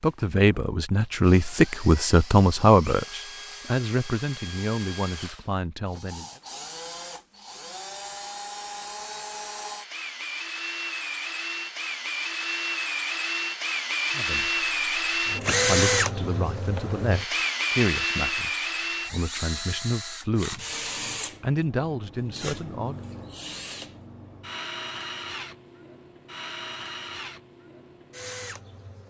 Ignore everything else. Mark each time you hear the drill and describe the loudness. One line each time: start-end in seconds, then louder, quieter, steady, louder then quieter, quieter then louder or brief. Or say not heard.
0.0-29.0 louder then quieter.